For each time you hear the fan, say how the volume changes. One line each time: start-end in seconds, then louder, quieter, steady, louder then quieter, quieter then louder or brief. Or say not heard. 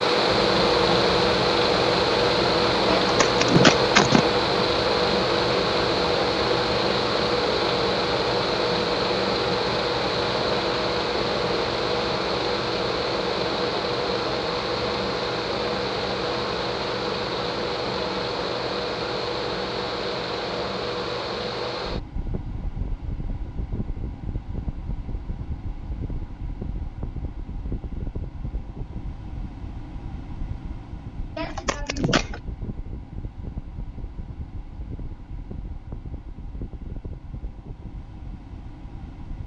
0.0-39.4 quieter.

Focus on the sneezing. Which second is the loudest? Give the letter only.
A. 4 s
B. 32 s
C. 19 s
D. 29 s
A.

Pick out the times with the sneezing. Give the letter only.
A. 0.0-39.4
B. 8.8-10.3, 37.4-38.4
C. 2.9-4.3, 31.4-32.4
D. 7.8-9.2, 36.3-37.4
C.